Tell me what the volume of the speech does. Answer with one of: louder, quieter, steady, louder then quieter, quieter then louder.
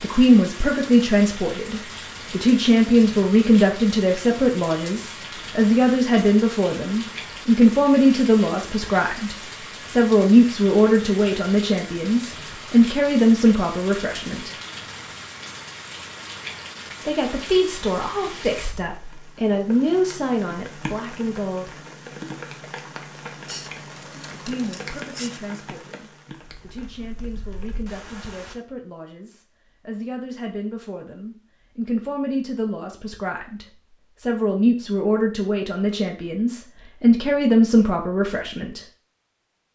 quieter then louder.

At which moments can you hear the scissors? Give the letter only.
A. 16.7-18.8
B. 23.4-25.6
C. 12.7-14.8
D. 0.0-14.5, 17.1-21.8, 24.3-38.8
B.